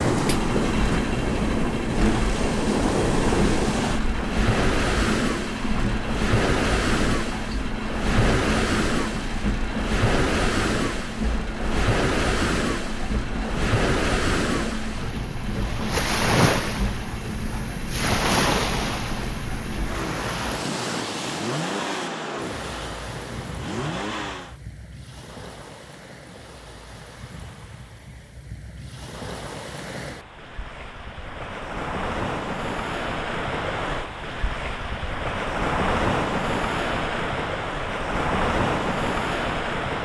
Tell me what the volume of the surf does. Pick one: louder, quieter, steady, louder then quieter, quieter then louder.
quieter then louder.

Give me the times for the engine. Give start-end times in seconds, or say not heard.
0.1-24.6.